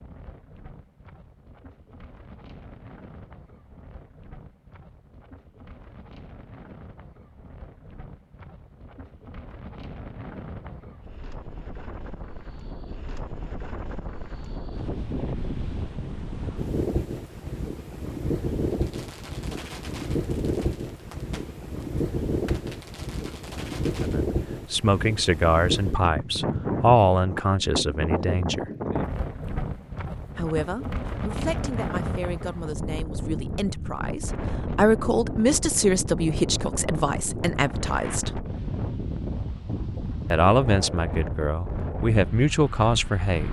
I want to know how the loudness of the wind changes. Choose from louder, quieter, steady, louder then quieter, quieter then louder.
louder.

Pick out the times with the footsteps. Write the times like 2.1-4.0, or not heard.
not heard.